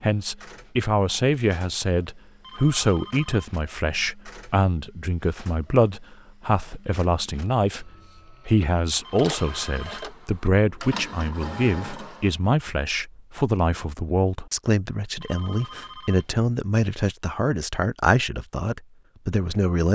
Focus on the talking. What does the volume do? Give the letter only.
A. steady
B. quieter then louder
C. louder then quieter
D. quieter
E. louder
A.